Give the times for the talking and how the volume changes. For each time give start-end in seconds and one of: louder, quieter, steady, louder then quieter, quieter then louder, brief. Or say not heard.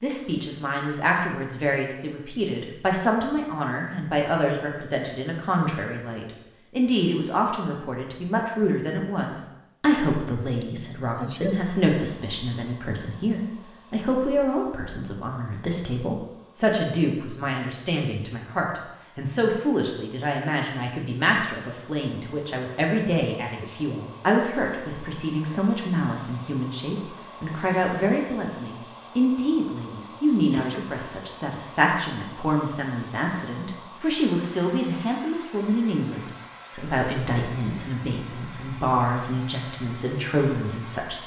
0.0-41.2 steady.